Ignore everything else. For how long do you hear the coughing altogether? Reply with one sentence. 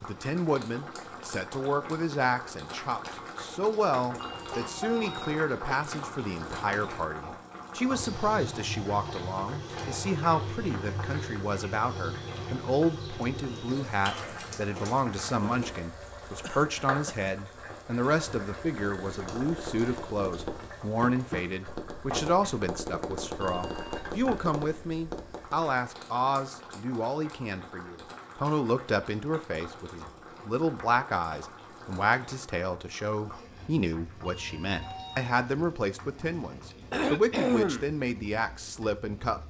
The coughing can be heard for 3 seconds in total.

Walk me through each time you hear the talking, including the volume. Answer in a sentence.
You can hear the talking from 0.0 to 39.4 s, at a steady volume.